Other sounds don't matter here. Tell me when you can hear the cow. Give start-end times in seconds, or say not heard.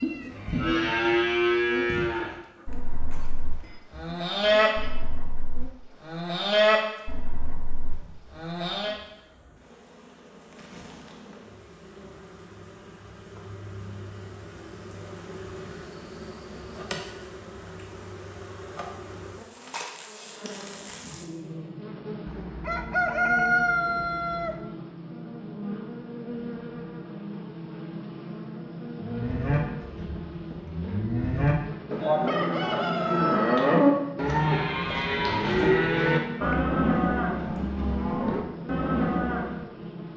0.0-8.9, 28.9-39.6.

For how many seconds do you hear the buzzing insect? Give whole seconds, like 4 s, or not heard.
40 s.